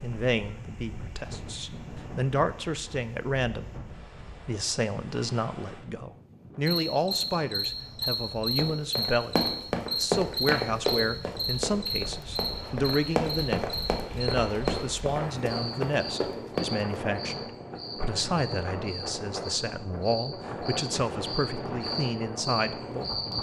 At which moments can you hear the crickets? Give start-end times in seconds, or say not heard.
6.7-23.3.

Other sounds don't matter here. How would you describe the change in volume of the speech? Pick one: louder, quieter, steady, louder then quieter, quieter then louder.
steady.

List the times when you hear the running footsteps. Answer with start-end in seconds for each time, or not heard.
8.2-17.0.